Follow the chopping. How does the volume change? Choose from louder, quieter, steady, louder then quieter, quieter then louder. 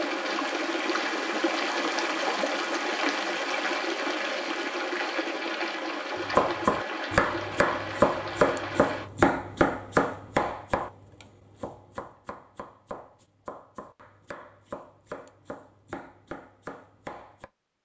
quieter.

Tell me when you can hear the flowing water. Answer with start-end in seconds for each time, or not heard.
0.0-9.1.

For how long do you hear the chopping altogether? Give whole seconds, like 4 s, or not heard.
11 s.